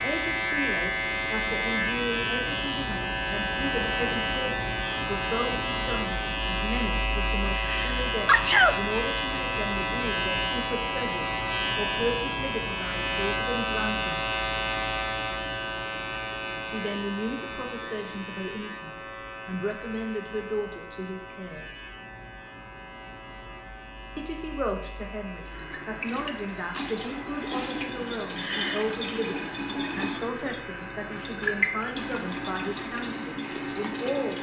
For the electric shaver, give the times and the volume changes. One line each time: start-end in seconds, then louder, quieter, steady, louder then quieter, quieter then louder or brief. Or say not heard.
0.0-34.3 quieter.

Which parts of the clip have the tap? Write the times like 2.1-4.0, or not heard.
25.4-34.3.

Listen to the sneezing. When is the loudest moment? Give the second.
8 s.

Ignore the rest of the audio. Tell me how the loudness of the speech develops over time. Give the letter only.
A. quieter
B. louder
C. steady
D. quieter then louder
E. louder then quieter
C.